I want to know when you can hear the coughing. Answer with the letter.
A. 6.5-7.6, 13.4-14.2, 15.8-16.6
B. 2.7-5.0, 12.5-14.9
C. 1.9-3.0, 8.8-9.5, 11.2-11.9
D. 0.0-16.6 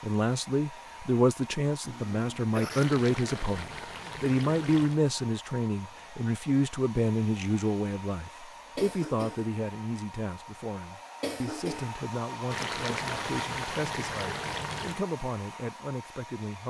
C.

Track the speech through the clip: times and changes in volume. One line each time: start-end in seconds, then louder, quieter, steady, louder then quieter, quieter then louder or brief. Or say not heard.
0.0-16.6 quieter.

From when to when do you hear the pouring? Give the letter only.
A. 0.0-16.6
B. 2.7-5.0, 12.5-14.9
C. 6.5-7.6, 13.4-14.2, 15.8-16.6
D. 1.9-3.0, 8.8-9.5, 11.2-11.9
B.